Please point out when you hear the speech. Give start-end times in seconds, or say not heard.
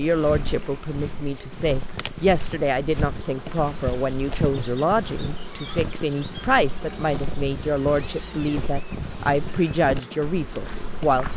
0.0-11.3.